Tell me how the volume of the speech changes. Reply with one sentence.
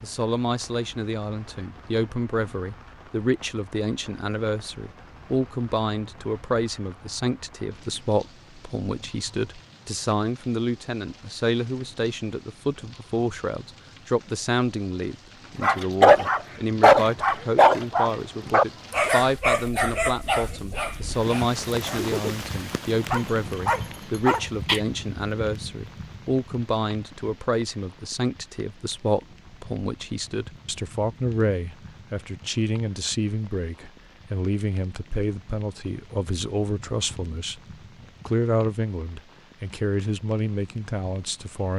The loudness of the speech stays about the same.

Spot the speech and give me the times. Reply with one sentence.
The speech can be heard from 0.0 to 37.6 s and from 38.2 to 41.7 s.